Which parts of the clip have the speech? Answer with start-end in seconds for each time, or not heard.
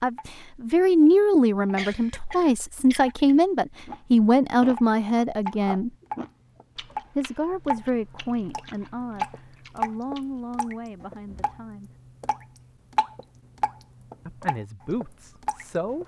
0.0-5.9, 7.2-11.9, 14.2-16.0.